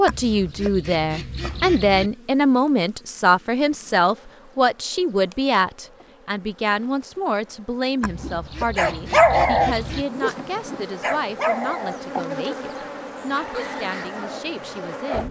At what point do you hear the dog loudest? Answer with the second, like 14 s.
9 s.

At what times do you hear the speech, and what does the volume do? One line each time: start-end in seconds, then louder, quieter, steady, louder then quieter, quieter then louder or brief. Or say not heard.
0.0-15.2 quieter.